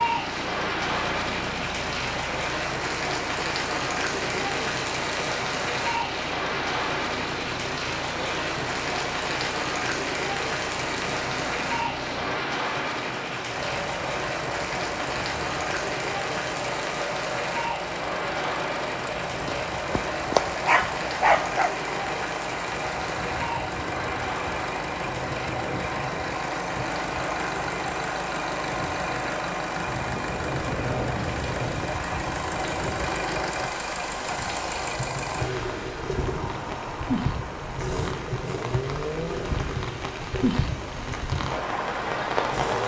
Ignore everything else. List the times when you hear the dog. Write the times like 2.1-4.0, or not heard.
19.4-21.7.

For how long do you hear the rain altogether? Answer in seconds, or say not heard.
43 s.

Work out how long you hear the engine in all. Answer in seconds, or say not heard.
43 s.